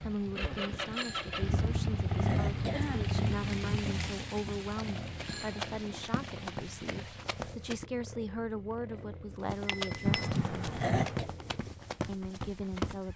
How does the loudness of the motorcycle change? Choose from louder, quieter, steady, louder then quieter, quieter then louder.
quieter.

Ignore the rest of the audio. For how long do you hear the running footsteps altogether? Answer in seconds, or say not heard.
7 s.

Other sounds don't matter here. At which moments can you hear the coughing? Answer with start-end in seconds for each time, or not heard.
1.5-3.9, 10.1-11.2.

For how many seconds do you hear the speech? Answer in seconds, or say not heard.
12 s.